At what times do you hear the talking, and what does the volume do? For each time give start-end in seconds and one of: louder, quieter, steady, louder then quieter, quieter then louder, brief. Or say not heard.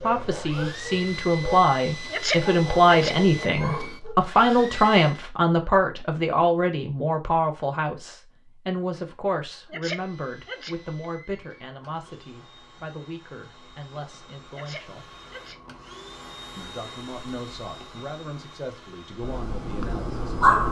0.0-15.1 quieter
16.6-20.6 steady.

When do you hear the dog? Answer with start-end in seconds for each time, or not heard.
0.0-4.2, 19.2-20.6.